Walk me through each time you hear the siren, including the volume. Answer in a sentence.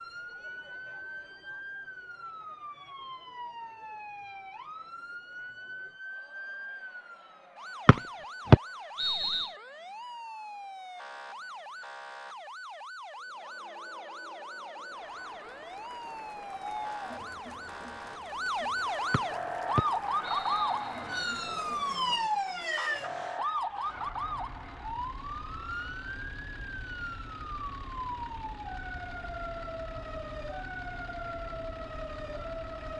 You can hear the siren from 0.0 to 32.9 s, getting louder then quieter.